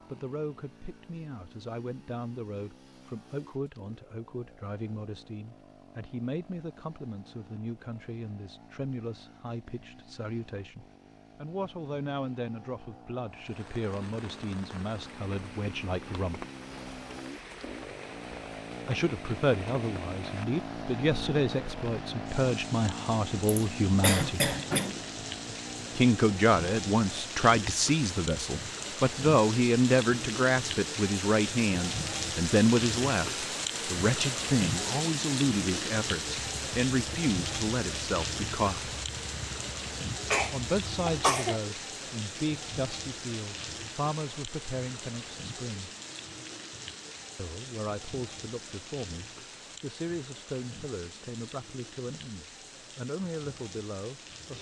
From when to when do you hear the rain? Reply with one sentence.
The rain can be heard from 13.3 to 54.5 s.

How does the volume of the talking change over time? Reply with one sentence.
The loudness of the talking goes up, then down.